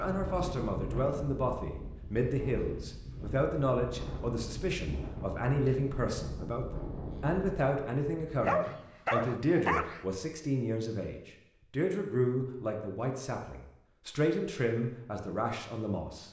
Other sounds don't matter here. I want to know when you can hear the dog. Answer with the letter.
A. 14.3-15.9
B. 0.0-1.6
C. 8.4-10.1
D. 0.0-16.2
C.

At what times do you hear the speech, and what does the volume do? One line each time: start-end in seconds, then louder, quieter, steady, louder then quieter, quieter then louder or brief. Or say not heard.
0.0-16.2 steady.